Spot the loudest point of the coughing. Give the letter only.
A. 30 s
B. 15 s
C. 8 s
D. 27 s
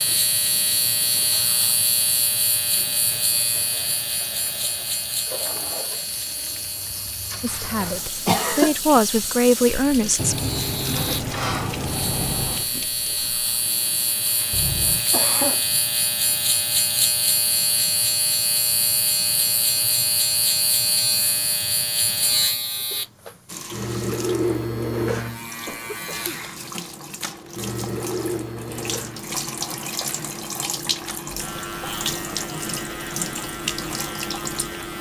C.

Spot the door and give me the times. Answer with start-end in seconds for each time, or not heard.
10.2-12.7.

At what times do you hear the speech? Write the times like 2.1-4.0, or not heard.
7.4-10.3.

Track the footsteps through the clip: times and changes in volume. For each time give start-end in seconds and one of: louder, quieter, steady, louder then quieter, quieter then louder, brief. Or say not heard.
not heard.